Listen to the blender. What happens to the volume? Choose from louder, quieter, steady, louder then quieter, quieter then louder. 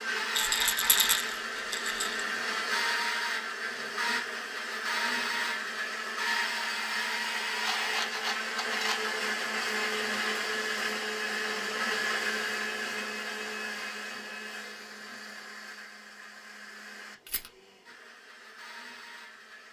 quieter.